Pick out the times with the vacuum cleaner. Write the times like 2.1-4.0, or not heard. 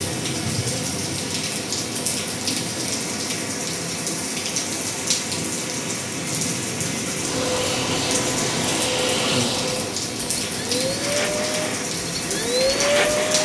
7.2-13.4.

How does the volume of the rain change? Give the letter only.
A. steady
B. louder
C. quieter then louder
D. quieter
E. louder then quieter
A.